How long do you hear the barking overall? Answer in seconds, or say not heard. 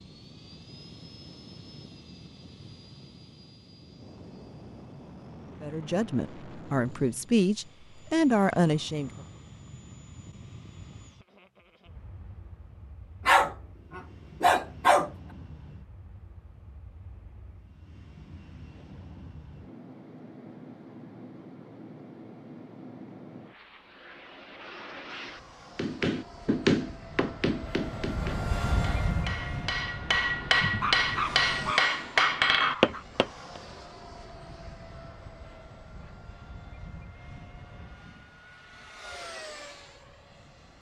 4 s.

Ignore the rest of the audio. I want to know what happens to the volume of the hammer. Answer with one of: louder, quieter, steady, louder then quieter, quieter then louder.
quieter then louder.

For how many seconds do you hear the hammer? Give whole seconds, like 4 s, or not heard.
8 s.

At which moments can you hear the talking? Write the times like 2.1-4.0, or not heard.
5.6-9.2.